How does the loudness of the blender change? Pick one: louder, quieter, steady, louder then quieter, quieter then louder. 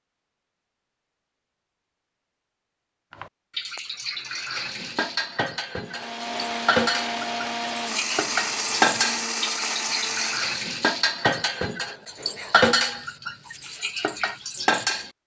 steady.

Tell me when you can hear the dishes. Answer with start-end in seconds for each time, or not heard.
3.1-15.1.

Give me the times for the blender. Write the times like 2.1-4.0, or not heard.
5.8-10.7.